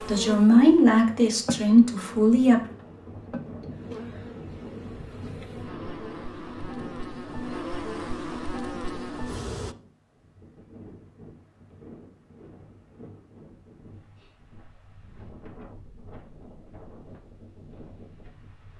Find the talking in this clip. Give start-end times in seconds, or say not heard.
0.1-2.6.